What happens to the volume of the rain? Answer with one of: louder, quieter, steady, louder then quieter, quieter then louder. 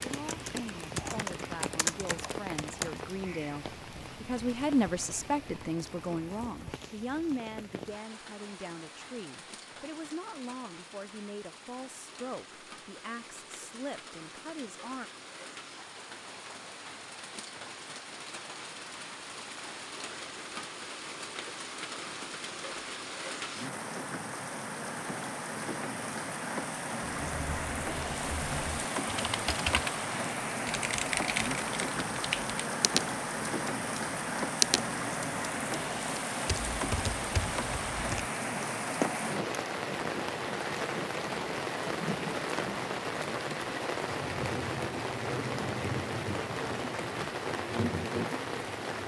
louder.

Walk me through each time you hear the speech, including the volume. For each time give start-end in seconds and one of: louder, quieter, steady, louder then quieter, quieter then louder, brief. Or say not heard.
0.0-15.1 louder then quieter.